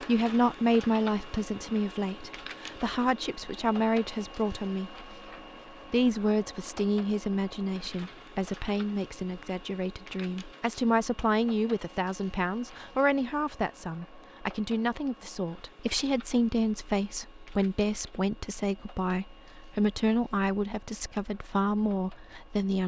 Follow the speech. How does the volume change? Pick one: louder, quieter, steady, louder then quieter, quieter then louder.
steady.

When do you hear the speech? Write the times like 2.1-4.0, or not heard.
0.0-5.0, 5.9-22.8.